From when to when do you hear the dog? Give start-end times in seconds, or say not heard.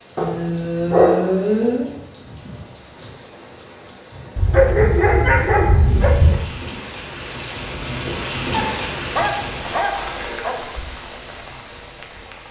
0.1-1.9, 4.3-6.3, 8.5-10.6.